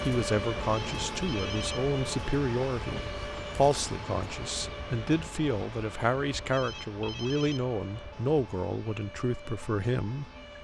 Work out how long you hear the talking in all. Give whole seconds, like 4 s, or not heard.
10 s.